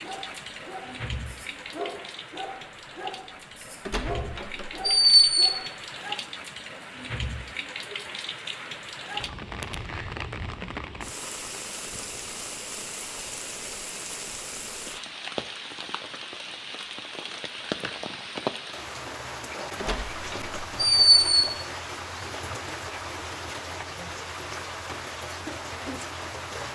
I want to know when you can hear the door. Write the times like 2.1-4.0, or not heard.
3.9-5.5, 19.8-21.2.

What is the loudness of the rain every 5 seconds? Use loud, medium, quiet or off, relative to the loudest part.
medium, loud, loud, loud, loud, loud.